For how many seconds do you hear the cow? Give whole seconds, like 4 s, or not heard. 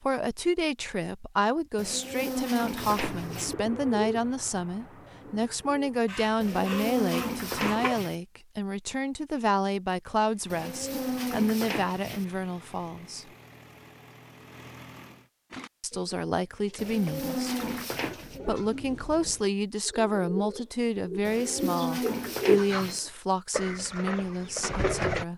9 s.